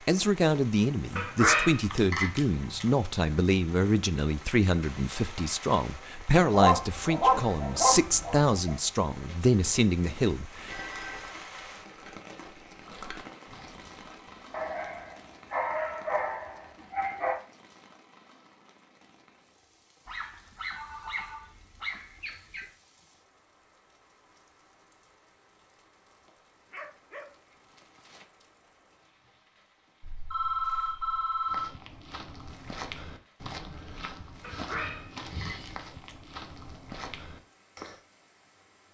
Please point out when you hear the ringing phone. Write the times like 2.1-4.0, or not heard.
10.7-11.3, 20.7-21.5, 30.0-31.8.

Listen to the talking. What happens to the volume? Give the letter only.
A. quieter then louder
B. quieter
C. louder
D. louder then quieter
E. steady
E.